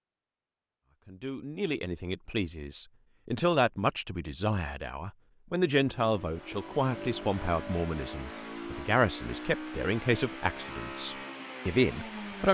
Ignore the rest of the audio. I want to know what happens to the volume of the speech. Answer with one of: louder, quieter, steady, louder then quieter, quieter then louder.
steady.